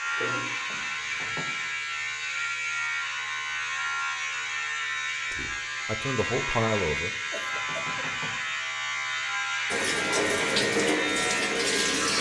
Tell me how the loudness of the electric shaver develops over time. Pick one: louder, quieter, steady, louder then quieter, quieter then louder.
steady.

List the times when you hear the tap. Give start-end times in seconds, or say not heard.
9.7-12.1.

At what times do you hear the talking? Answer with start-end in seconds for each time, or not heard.
5.3-7.1.